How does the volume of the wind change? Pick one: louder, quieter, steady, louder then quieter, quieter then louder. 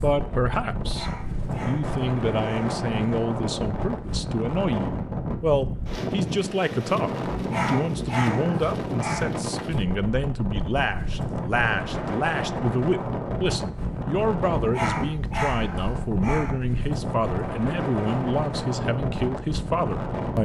steady.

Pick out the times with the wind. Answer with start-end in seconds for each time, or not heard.
0.0-20.4.